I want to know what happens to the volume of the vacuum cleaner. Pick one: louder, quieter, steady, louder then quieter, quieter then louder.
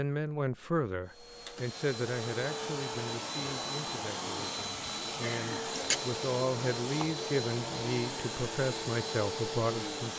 steady.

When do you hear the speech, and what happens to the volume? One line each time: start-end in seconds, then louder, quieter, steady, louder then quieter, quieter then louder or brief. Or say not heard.
0.0-10.1 quieter then louder.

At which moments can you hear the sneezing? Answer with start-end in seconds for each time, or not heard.
5.2-6.0.